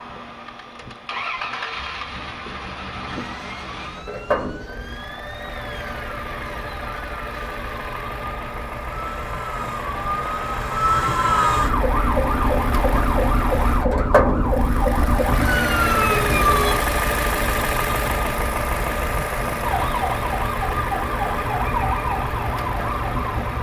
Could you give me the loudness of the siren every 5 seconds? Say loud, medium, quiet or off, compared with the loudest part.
quiet, quiet, loud, loud, medium.